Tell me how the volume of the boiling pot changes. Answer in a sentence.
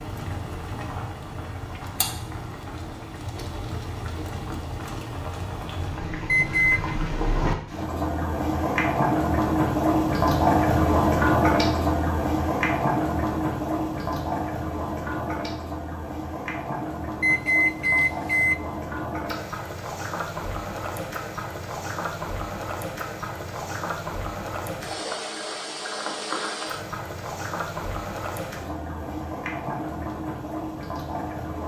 The loudness of the boiling pot goes up, then down.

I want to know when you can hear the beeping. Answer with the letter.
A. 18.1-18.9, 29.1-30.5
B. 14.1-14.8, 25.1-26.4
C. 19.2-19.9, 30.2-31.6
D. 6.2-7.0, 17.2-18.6
D.